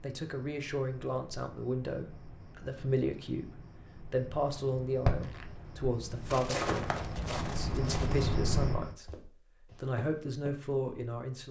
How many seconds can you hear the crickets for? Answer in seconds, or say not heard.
9 s.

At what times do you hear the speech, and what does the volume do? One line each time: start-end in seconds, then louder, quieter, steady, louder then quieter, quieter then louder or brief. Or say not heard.
0.0-11.4 steady.